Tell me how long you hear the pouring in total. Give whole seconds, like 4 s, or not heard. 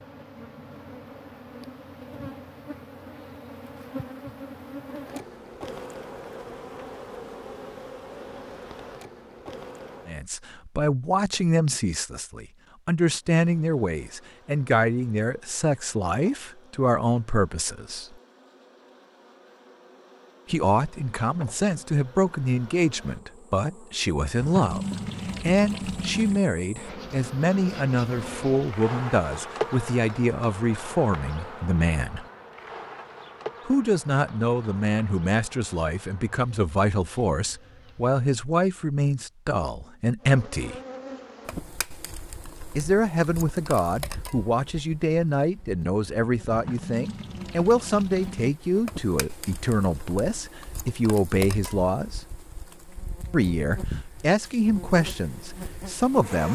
4 s.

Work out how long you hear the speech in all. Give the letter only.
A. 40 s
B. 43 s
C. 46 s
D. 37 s
A.